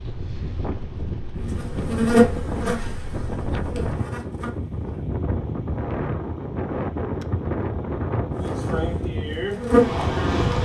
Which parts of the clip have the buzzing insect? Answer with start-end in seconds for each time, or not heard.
1.6-4.5, 8.4-10.5.